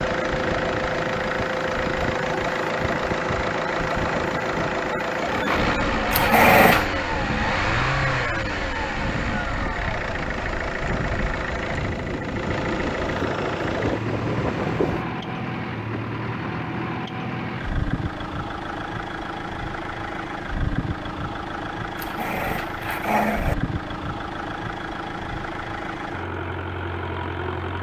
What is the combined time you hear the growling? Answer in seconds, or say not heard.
2 s.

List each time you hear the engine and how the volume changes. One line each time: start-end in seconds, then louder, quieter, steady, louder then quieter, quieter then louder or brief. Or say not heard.
0.0-27.7 quieter.